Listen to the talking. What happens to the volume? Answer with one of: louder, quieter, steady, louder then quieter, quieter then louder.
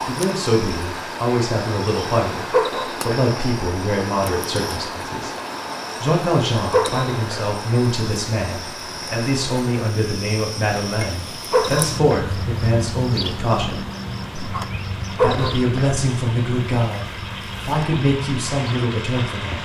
steady.